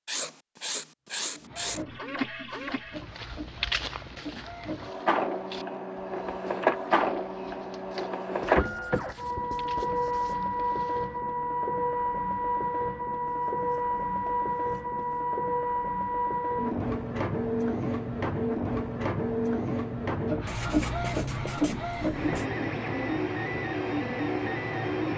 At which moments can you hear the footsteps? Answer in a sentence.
You can hear the footsteps from 2.4 to 11.2 s.